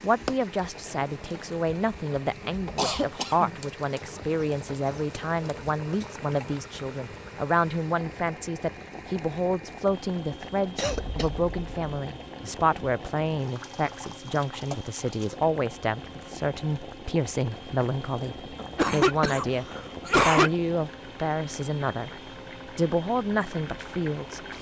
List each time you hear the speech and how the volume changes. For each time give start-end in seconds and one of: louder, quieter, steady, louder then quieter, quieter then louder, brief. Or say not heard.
0.0-22.1 steady
22.8-24.4 brief.